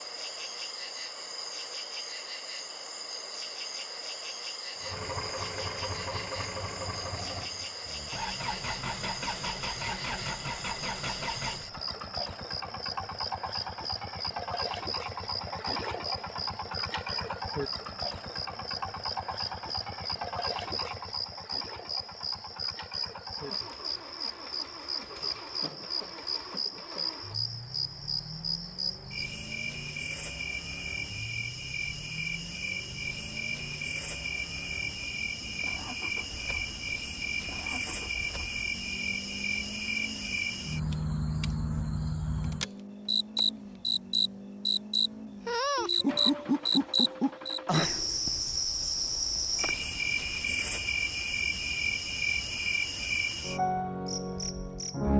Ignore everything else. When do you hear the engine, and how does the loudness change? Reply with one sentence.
You can hear the engine from 4.8 to 47.9 s, getting quieter.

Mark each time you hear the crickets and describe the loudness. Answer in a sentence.
You can hear the crickets from 0.0 to 55.1 s, getting louder.